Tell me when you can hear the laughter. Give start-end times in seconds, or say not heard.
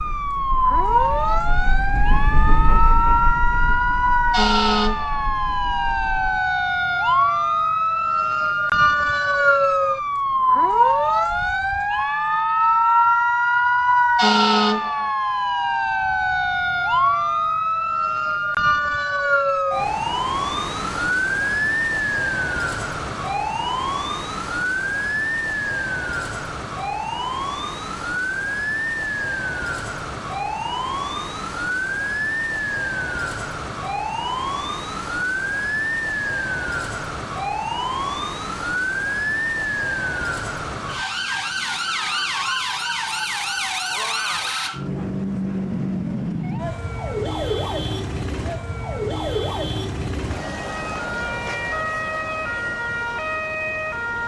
not heard.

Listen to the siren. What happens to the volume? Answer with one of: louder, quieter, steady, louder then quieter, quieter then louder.
quieter.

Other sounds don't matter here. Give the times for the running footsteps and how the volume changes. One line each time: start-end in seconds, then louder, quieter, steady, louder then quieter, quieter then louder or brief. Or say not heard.
not heard.